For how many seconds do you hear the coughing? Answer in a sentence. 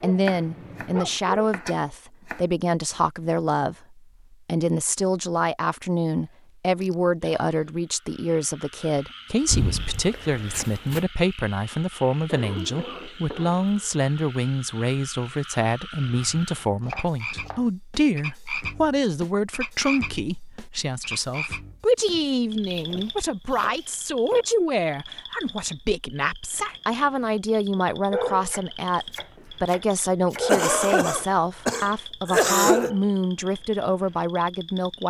You can hear the coughing for 5 seconds altogether.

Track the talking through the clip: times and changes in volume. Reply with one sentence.
You can hear the talking from 0.0 to 35.0 s, at a steady volume.